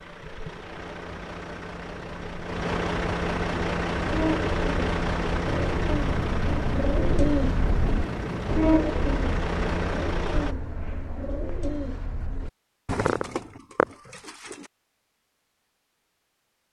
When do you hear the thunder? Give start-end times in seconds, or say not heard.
5.5-8.6.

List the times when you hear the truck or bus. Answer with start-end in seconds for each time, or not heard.
0.0-10.6.